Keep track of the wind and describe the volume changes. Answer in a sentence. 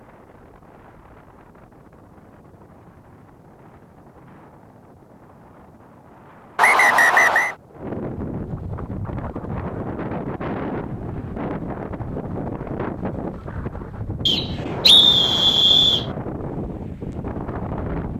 The volume of the wind goes up.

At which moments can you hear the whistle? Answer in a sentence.
The whistle can be heard from 6.5 to 7.5 s and from 14.2 to 16.1 s.